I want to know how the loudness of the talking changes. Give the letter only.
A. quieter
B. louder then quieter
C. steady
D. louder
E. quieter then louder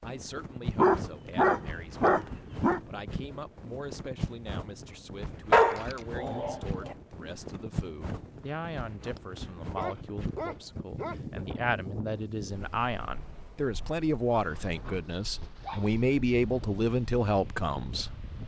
D.